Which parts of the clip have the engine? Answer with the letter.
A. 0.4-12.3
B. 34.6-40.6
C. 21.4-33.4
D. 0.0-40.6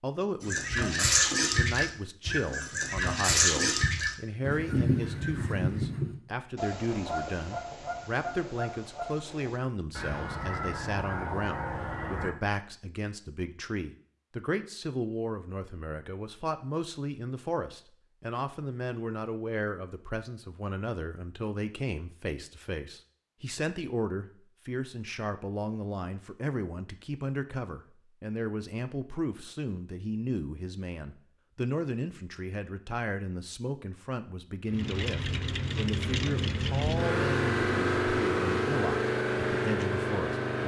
B.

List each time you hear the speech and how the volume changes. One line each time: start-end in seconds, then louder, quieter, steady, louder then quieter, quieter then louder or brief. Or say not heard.
0.0-40.6 steady.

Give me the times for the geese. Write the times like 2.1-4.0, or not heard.
0.4-12.3.